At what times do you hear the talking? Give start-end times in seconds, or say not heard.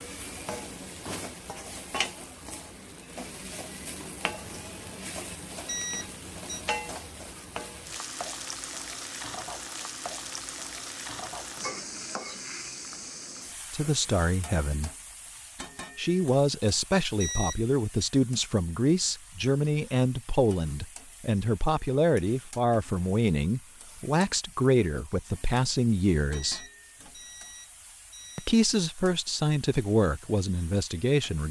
13.7-14.9, 15.9-26.6, 28.4-31.4.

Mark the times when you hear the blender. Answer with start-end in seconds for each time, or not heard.
not heard.